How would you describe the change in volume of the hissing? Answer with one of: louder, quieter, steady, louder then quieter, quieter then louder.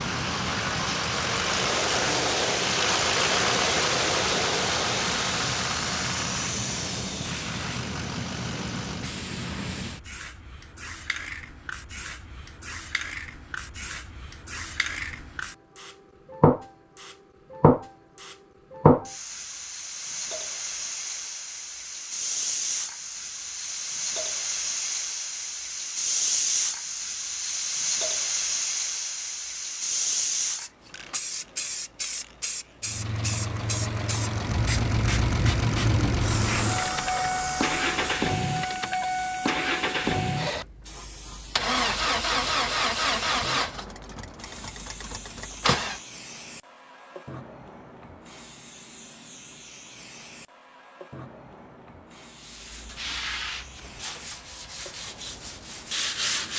louder then quieter.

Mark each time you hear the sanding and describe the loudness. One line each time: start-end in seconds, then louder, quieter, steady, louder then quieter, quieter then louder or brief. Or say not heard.
52.4-56.5 quieter then louder.